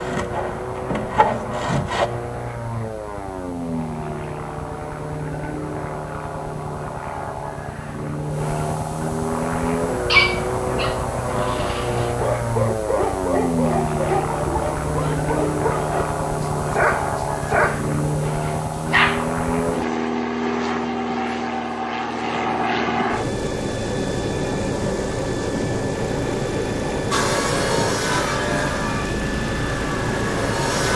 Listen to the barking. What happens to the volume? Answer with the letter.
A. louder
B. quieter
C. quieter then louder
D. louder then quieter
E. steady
A.